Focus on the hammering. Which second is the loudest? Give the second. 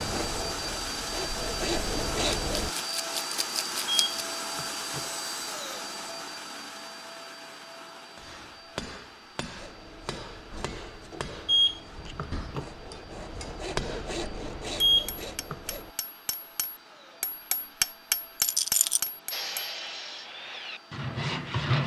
18 s.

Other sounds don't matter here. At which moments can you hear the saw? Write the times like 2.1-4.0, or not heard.
0.0-2.8, 9.6-15.9, 19.3-21.8.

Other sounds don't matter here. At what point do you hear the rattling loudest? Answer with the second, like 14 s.
19 s.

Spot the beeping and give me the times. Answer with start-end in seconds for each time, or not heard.
3.9-5.0, 11.4-12.7, 14.8-15.6.